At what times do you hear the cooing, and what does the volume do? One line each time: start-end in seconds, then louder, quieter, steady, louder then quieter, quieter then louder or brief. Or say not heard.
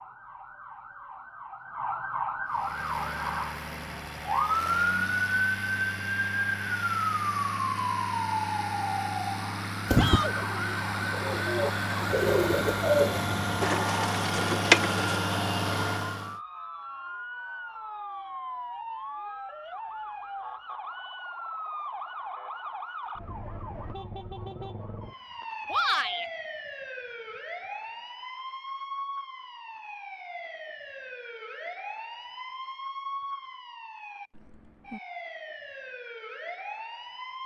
9.8-15.2 louder.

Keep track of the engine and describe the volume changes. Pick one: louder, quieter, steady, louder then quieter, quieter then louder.
louder.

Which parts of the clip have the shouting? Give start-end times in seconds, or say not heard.
9.9-10.3, 25.7-26.2.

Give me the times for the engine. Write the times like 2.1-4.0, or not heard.
2.5-16.4.